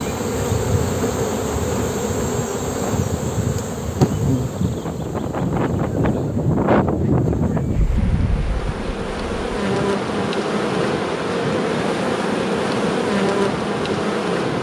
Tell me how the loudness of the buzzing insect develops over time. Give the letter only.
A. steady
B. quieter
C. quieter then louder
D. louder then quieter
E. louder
C.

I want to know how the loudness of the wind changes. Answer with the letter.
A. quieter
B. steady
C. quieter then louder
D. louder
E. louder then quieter
E.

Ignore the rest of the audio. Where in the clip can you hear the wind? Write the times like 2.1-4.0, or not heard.
0.0-14.5.